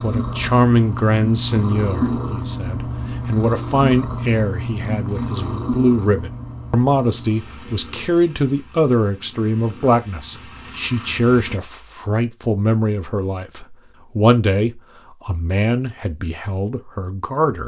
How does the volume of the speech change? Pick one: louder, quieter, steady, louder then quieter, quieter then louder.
steady.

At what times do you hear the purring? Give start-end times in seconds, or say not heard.
0.0-11.6.